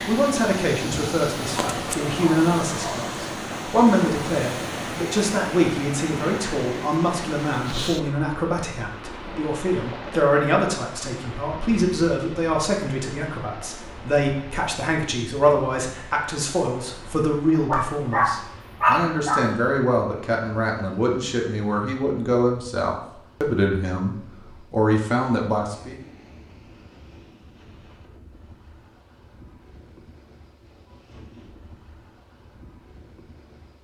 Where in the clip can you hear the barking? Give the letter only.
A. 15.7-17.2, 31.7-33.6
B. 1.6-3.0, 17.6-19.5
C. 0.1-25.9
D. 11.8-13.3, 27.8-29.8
B.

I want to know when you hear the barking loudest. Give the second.
19 s.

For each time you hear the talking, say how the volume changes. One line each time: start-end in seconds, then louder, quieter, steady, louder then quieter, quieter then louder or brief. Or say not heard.
0.1-25.9 steady.